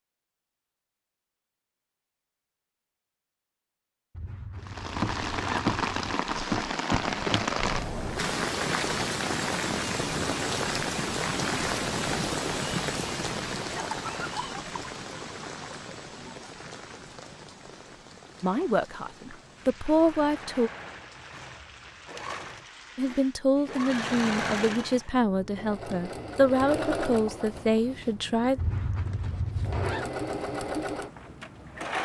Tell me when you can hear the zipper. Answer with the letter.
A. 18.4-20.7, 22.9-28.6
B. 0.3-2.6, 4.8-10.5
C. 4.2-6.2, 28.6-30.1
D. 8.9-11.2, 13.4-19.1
C.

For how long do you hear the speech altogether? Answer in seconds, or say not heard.
8 s.